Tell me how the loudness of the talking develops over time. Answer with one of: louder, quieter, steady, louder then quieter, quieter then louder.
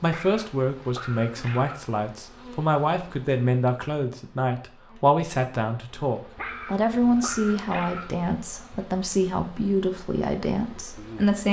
steady.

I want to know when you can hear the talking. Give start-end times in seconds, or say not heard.
0.0-11.4.